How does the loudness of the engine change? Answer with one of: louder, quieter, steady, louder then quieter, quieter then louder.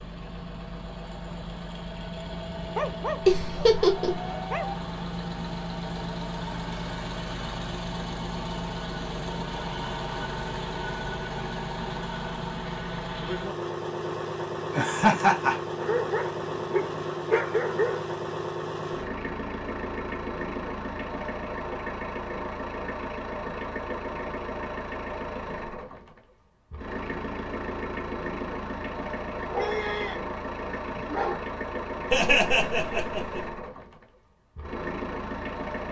steady.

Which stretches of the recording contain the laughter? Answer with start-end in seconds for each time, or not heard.
3.2-4.2, 14.7-15.6, 32.1-33.4.